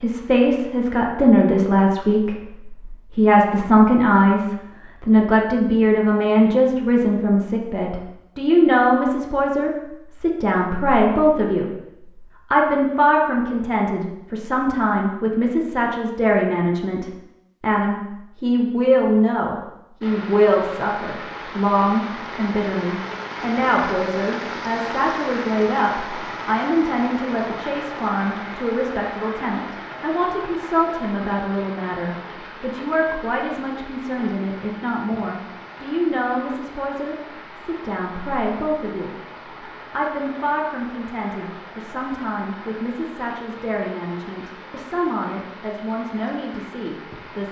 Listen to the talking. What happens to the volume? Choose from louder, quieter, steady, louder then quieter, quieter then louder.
quieter.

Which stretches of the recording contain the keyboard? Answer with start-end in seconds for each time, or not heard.
not heard.